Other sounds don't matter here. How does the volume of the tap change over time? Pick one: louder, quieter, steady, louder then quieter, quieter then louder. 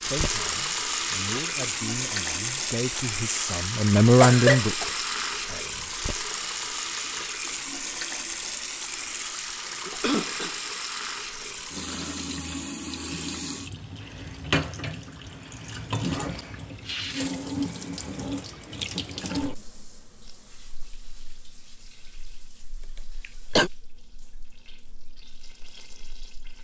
quieter.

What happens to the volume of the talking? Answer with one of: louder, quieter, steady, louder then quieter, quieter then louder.
louder then quieter.